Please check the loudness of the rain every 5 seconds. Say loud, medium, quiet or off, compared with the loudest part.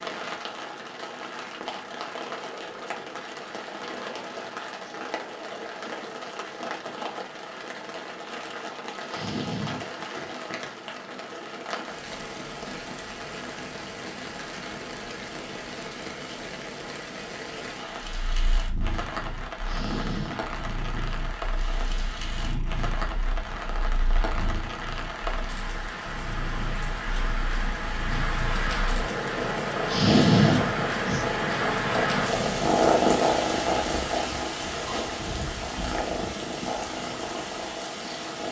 medium, medium, medium, medium, medium, loud, loud, medium.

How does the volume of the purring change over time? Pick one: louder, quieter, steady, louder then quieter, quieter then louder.
louder then quieter.